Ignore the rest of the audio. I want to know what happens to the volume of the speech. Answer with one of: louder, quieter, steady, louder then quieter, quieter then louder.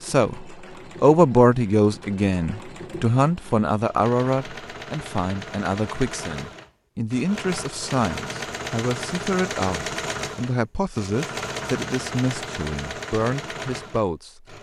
quieter.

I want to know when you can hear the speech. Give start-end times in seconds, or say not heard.
0.0-14.5.